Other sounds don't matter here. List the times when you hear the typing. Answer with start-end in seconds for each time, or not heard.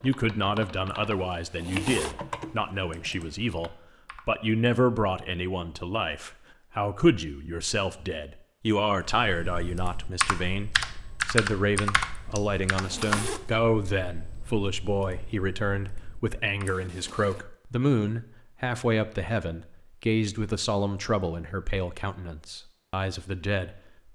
0.0-4.3, 9.2-16.8.